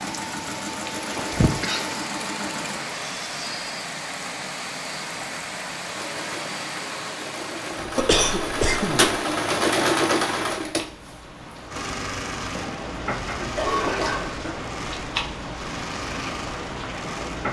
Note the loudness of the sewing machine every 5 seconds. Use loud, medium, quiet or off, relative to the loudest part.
medium, loud, loud, medium.